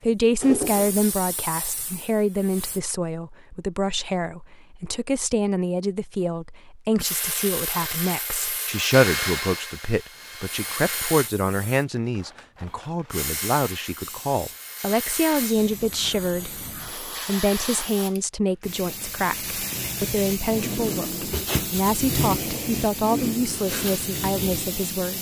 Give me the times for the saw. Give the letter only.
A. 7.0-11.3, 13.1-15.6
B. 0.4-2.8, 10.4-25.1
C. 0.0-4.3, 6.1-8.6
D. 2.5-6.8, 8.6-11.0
A.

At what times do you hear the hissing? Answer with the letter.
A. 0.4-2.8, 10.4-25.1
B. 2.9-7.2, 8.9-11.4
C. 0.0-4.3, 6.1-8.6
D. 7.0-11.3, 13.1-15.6
A.